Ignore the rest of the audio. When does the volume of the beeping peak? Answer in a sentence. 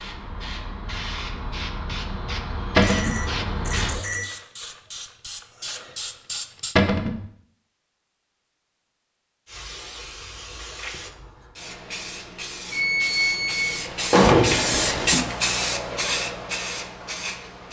The volume of the beeping peaks at 13 seconds.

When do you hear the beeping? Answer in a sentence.
The beeping can be heard from 2.8 to 4.2 s and from 12.7 to 13.8 s.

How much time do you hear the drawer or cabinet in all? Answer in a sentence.
The drawer or cabinet can be heard for 2 seconds in total.